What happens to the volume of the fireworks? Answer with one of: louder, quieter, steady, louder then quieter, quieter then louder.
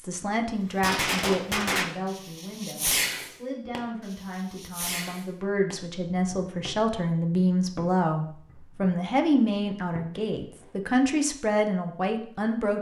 quieter.